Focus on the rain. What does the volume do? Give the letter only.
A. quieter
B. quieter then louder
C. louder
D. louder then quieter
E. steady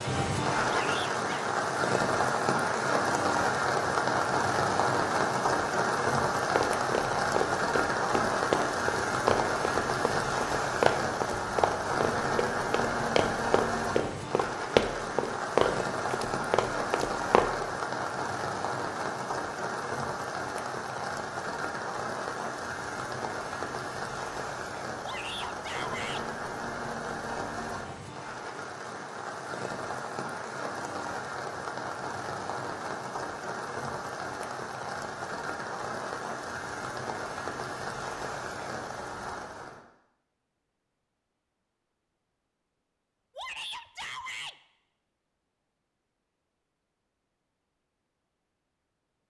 A.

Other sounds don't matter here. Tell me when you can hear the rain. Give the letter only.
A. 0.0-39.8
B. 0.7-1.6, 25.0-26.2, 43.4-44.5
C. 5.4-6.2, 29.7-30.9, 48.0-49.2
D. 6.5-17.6
A.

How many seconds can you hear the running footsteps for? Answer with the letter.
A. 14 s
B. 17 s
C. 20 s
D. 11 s
D.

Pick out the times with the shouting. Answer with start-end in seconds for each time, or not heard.
0.7-1.6, 25.0-26.2, 43.4-44.5.